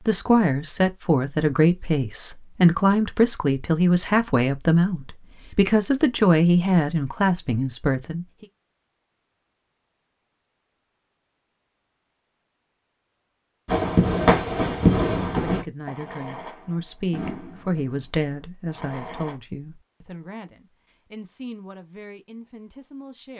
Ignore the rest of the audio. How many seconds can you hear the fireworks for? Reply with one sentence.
You can hear the fireworks for 6 seconds altogether.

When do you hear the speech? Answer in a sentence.
You can hear the speech from 0.0 to 8.4 s and from 15.4 to 23.3 s.